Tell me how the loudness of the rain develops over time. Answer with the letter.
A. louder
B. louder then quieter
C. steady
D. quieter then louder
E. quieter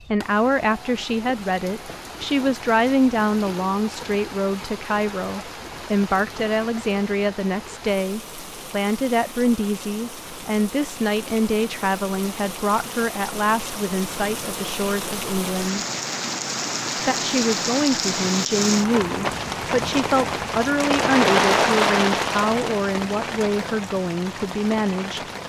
A.